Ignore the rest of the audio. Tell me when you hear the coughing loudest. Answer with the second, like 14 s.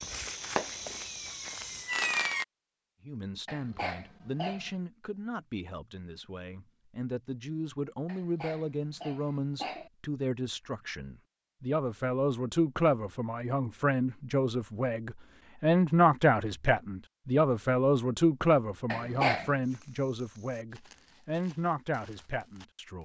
19 s.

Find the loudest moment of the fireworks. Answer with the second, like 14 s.
2 s.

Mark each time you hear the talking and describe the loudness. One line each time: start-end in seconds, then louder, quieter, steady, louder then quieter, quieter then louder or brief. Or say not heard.
3.0-22.9 louder then quieter.